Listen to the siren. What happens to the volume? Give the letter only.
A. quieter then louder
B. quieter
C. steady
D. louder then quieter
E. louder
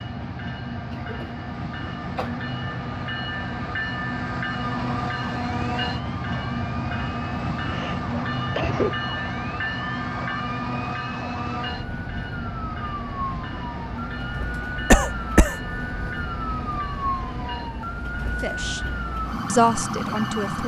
E.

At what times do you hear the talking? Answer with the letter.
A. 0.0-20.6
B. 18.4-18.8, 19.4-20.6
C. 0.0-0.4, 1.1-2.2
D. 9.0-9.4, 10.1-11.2
B.